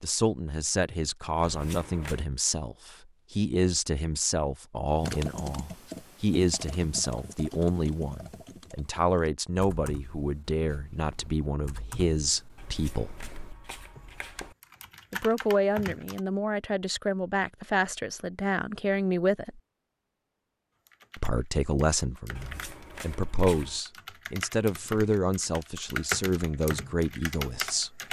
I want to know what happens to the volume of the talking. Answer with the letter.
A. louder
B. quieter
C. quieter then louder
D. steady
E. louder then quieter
D.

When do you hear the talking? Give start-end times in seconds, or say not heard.
0.0-13.2, 15.1-19.6, 21.1-28.0.